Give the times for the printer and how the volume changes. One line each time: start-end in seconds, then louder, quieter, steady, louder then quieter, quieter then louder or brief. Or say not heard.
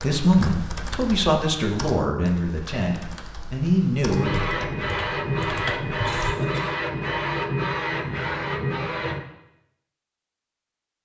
4.1-9.2 steady.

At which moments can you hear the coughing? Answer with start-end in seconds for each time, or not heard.
6.0-6.7.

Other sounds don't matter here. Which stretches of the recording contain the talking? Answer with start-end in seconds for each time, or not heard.
0.0-4.5.